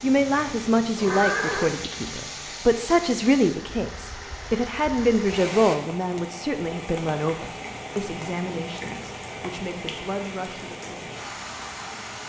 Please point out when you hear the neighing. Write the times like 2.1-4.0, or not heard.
0.8-1.8.